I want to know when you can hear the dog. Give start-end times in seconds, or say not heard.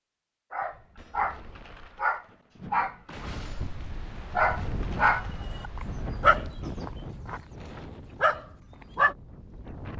0.5-9.2.